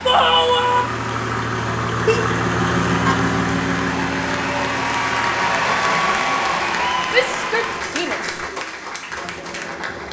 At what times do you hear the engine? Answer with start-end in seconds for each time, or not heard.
0.0-10.0.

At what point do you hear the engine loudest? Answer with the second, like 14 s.
3 s.